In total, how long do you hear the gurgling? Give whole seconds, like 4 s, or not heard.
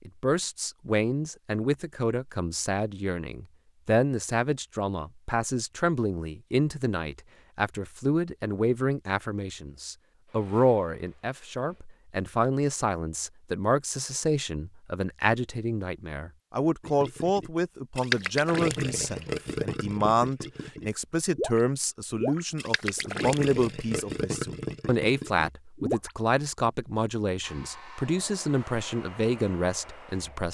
9 s.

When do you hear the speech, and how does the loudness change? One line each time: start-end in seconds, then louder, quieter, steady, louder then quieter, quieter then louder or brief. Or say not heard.
0.1-30.5 steady.